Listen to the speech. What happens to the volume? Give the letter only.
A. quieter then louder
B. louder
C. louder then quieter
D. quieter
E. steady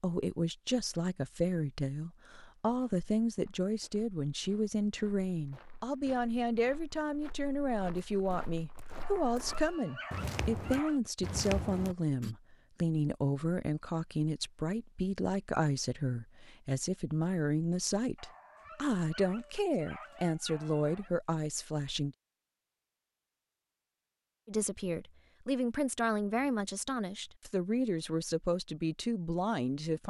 E.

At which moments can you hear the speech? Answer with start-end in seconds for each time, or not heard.
0.0-22.1, 24.4-30.0.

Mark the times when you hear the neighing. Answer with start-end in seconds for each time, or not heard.
not heard.